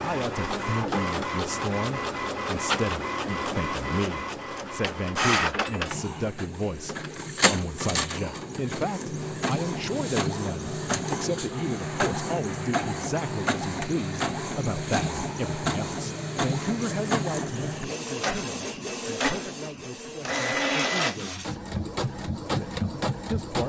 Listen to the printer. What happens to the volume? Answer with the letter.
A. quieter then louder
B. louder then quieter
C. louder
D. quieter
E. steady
E.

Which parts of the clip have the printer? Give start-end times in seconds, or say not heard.
0.0-23.6.